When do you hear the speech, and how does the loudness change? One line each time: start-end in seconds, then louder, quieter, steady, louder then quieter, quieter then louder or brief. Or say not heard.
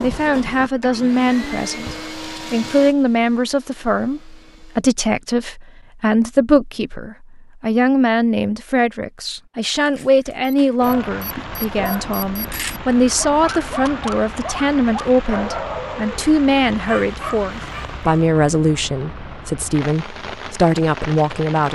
0.0-21.6 steady.